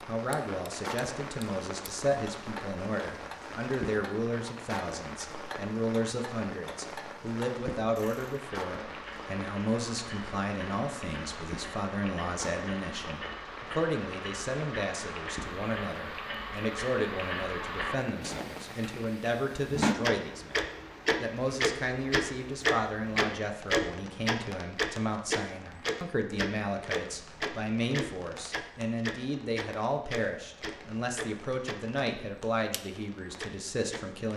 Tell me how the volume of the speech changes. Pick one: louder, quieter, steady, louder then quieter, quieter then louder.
steady.